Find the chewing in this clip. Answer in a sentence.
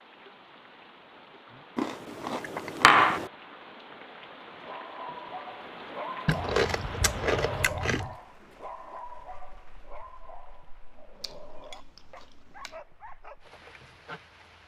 The chewing can be heard from 1.8 to 3.3 s, from 6.2 to 8.2 s and from 11.2 to 12.8 s.